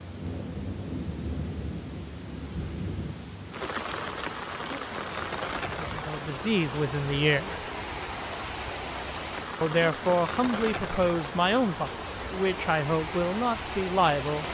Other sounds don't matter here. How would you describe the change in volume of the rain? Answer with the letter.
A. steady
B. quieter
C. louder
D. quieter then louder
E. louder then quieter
A.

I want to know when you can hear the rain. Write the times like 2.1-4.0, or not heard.
0.0-14.4.